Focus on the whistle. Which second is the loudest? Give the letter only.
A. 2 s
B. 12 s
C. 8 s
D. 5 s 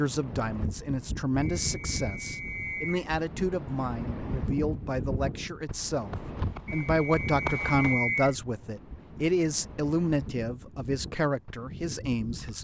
C.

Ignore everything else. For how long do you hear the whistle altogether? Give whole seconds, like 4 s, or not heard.
3 s.